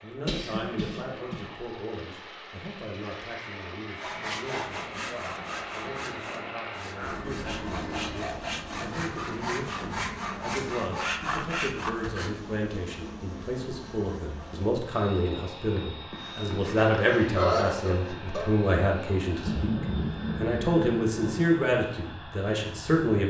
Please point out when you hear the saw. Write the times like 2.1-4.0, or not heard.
4.0-12.3.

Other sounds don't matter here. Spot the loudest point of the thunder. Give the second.
20 s.